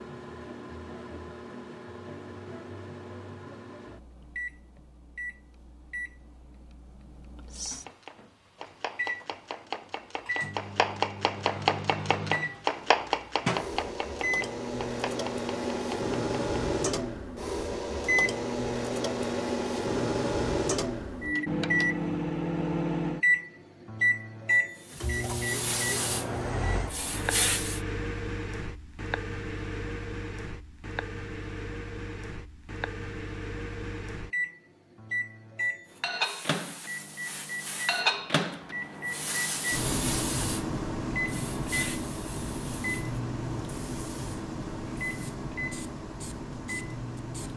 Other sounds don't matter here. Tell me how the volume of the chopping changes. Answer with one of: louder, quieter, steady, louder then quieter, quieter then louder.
louder then quieter.